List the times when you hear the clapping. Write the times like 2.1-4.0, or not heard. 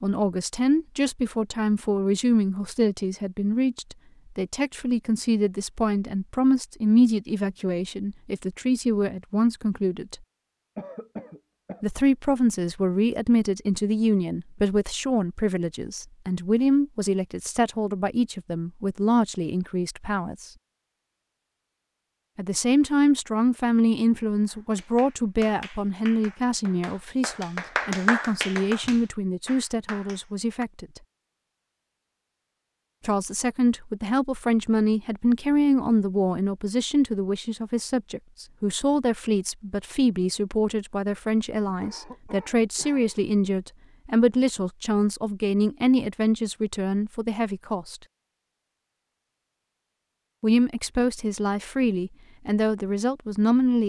24.4-30.6.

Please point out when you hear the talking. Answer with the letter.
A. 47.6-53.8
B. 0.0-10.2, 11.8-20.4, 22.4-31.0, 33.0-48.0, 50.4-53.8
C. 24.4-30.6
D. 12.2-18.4
B.